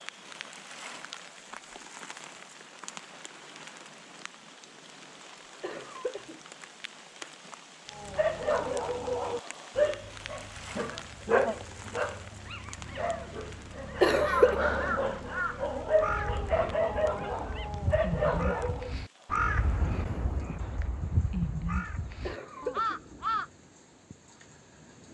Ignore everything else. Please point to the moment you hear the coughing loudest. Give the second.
14 s.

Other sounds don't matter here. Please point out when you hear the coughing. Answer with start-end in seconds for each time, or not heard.
5.6-6.4, 14.0-14.6, 22.2-23.0.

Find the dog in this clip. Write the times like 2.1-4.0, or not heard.
7.9-18.9.